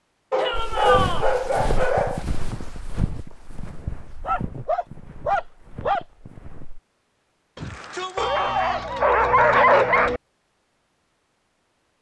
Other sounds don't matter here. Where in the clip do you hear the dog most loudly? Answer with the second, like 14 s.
10 s.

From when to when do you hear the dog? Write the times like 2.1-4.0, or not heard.
0.3-2.2, 4.2-6.0, 8.2-10.2.